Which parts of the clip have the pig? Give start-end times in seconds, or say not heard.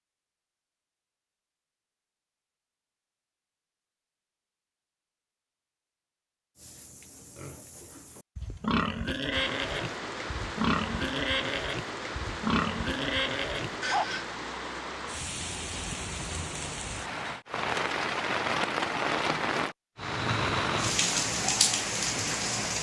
6.5-14.2.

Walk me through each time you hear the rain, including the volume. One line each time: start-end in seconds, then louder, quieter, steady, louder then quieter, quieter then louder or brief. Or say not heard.
9.3-22.7 louder.